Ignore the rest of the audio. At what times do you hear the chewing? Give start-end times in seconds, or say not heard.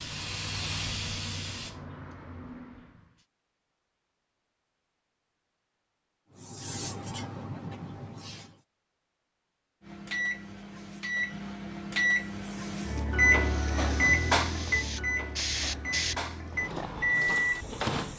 not heard.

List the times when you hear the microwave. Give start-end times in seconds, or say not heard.
9.8-18.1.